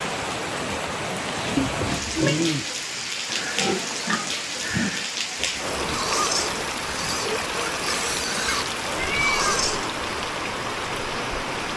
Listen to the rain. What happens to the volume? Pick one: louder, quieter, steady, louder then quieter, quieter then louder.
steady.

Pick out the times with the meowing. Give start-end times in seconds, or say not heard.
1.6-2.4, 8.9-9.6.